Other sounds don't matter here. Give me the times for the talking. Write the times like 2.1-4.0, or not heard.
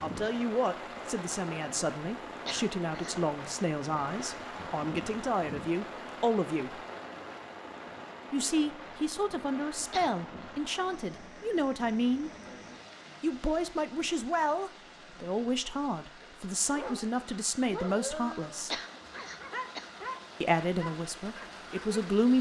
0.0-6.8, 8.3-12.3, 13.2-18.8, 20.4-22.3.